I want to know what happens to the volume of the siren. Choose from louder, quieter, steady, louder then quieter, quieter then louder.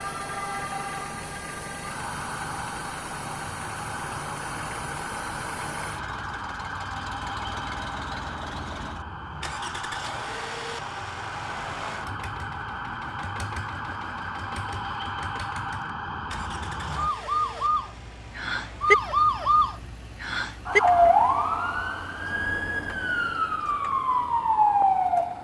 louder.